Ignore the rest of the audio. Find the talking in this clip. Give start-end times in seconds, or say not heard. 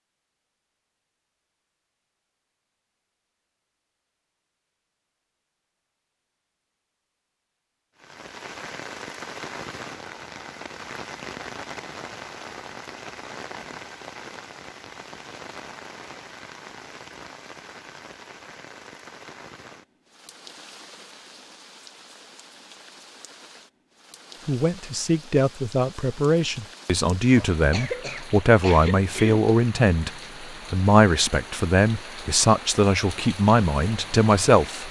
24.4-34.8.